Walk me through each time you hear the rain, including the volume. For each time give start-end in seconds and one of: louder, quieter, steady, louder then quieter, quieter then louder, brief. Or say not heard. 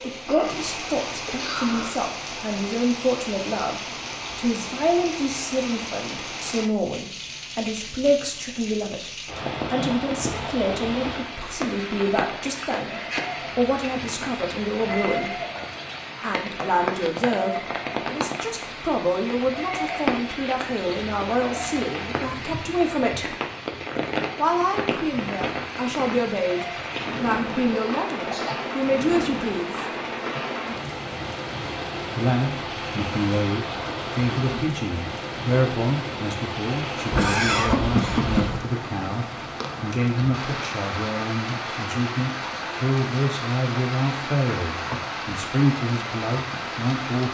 0.0-47.2 steady.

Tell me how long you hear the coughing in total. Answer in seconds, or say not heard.
4 s.